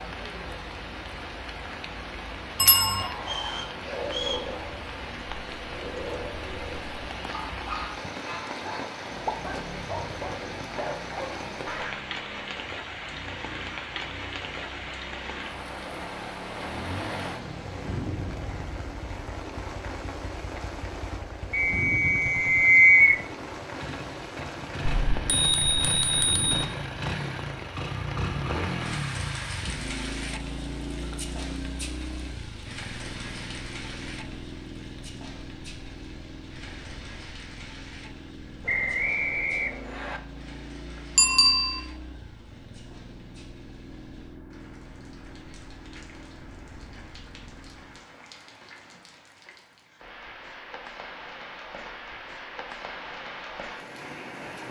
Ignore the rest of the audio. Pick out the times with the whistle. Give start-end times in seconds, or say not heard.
3.2-4.5, 21.5-23.2, 38.6-40.2.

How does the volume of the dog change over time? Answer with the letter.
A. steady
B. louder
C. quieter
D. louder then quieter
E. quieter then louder
A.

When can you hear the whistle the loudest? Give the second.
23 s.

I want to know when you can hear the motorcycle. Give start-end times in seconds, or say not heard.
9.2-48.1.